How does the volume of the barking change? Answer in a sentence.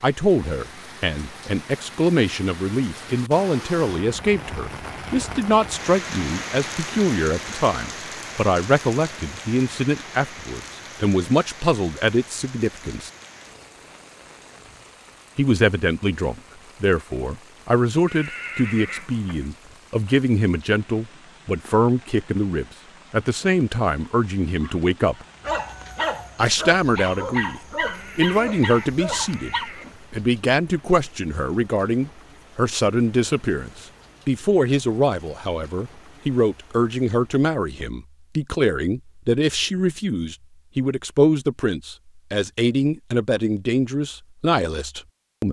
The loudness of the barking stays about the same.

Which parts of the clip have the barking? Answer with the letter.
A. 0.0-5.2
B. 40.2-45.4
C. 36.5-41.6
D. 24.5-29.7
D.